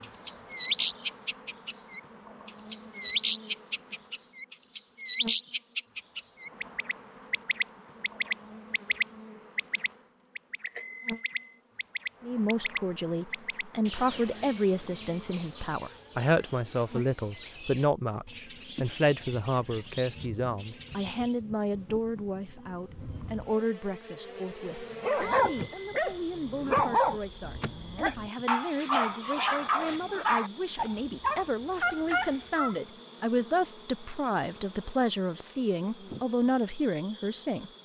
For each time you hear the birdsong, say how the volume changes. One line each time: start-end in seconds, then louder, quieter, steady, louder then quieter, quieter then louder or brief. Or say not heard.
0.0-21.4 quieter.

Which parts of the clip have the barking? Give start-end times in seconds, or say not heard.
24.9-32.8.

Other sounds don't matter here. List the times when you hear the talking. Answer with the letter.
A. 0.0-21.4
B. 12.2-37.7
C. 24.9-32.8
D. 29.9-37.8
B.